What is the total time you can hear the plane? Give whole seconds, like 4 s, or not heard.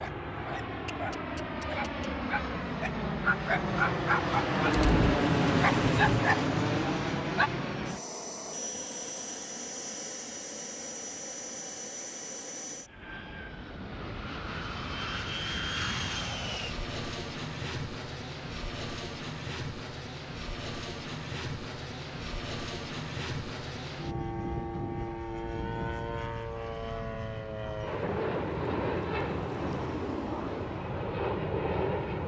32 s.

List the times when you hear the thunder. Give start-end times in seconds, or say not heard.
4.7-6.2, 27.9-29.9.